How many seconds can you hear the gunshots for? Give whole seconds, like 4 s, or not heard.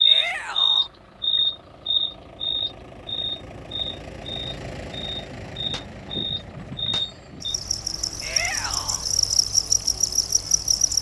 2 s.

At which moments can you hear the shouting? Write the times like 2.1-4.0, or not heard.
0.1-0.9, 8.2-9.1.